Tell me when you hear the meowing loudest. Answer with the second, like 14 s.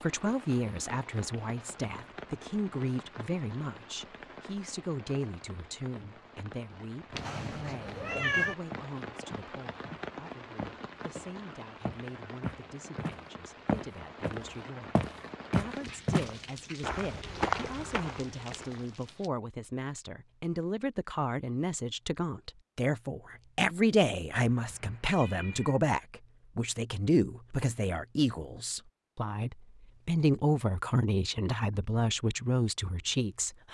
8 s.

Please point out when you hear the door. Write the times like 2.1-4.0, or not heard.
not heard.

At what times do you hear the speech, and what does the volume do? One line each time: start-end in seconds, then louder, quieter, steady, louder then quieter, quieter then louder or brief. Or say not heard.
0.0-33.6 quieter then louder.